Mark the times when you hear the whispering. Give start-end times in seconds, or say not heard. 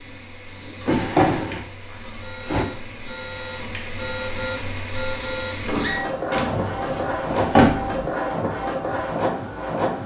not heard.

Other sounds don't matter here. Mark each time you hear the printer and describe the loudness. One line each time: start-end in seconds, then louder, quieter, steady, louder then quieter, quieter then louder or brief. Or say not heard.
0.0-10.0 louder.